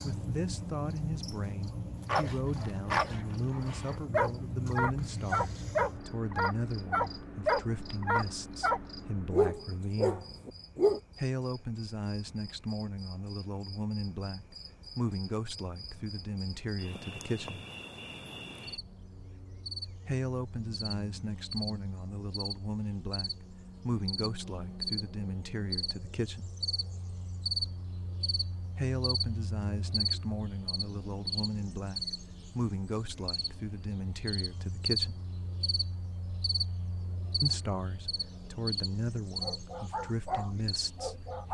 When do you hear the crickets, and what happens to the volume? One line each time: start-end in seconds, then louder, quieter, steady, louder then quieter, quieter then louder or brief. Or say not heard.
0.0-41.4 quieter then louder.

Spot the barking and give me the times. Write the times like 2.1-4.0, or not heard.
2.0-11.0, 39.4-41.4.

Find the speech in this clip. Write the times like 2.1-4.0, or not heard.
0.0-10.2, 11.2-17.6, 20.1-26.5, 28.8-35.2, 37.4-41.4.